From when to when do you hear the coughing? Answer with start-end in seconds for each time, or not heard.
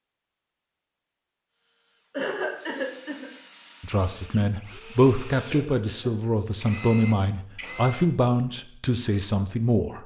2.1-3.3, 5.5-6.2.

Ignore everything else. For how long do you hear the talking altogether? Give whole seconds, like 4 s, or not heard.
6 s.